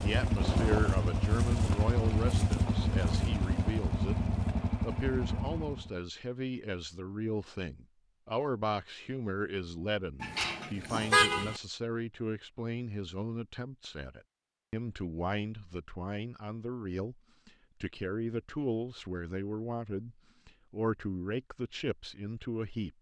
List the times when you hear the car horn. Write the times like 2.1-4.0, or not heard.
10.2-11.6.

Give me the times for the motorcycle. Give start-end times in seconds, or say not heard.
0.0-5.9.